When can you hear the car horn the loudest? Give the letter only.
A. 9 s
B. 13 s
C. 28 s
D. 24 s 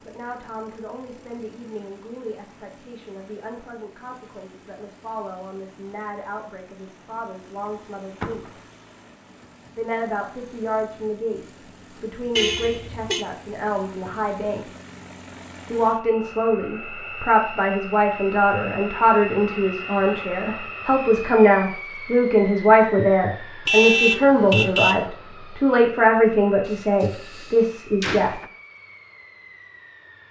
D.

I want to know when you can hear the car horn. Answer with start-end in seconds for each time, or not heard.
12.3-13.2, 23.6-25.1.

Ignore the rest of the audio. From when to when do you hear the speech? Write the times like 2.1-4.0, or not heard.
0.1-8.4, 9.8-14.7, 15.7-28.4.